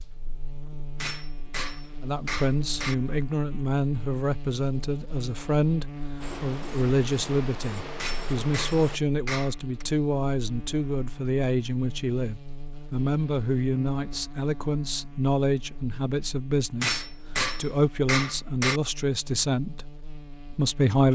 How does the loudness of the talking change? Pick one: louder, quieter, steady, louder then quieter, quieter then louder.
steady.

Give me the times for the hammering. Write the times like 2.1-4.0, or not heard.
1.0-3.0, 8.0-9.8, 16.8-18.8.